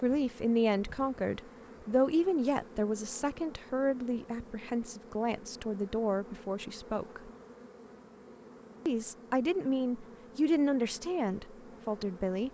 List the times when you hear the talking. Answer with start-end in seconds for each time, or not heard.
0.0-7.3, 8.8-12.4.